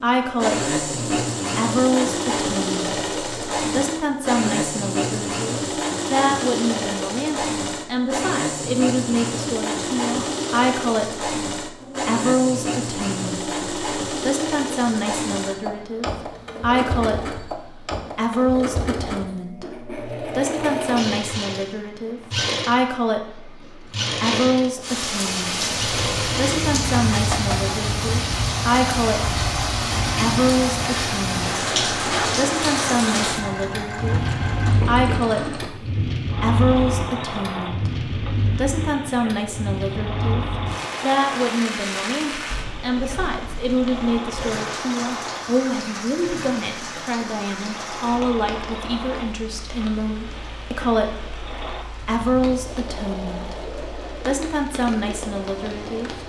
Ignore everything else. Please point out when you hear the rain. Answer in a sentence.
The rain can be heard from 24.8 to 56.2 s.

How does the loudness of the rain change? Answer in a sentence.
The volume of the rain goes down.